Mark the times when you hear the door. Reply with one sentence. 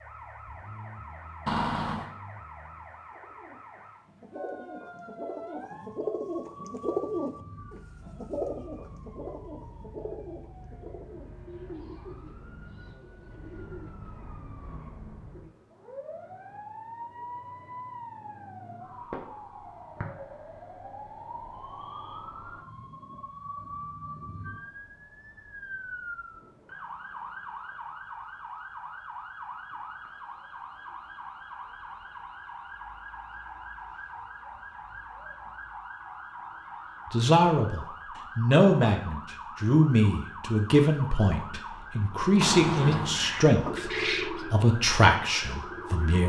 The door can be heard from 1.4 to 2.1 s and from 42.4 to 43.4 s.